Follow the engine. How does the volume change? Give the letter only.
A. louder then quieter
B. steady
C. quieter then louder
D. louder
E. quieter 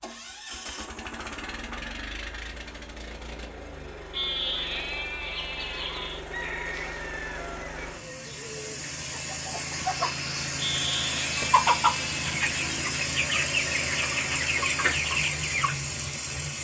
D.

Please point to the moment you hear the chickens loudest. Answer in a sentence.
The loudest moment of the chickens is at 12 seconds.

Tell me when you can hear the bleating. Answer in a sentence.
You can hear the bleating from 4.1 to 6.2 s and from 10.6 to 12.4 s.